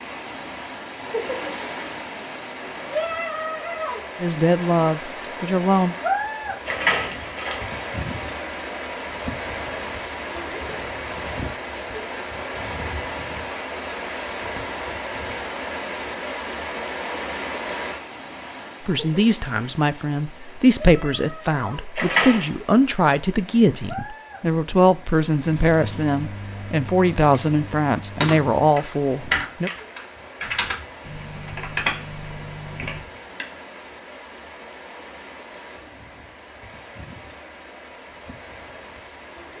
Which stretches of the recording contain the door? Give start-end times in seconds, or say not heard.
6.7-7.8, 21.9-22.5.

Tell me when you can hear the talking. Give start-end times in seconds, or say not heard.
4.2-6.0, 18.9-29.7.